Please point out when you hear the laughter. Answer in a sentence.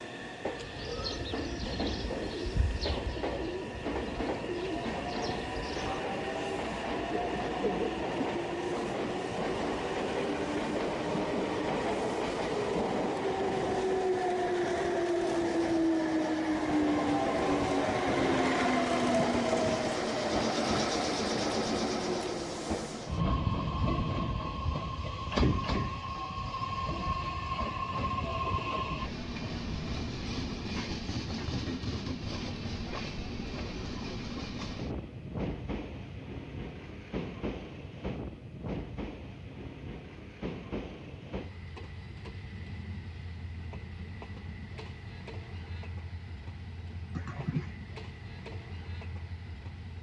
The laughter can be heard from 47.1 to 47.8 s.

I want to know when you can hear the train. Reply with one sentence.
The train can be heard from 0.0 to 49.9 s.